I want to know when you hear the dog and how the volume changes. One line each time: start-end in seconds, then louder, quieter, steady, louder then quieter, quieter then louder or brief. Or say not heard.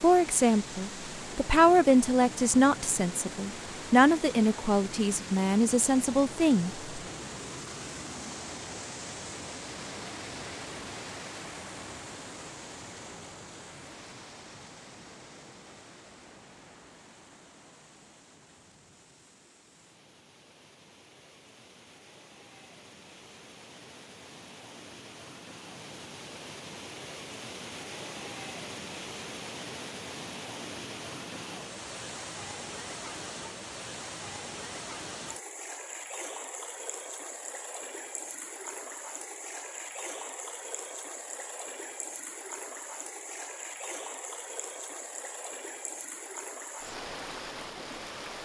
not heard.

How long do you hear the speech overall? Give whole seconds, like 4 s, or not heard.
7 s.